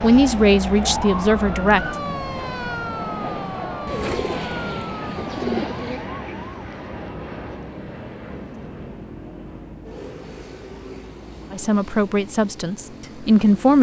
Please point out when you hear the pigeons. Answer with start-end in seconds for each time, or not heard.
3.9-6.0.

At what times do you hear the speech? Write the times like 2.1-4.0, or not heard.
0.0-1.9, 11.5-13.7.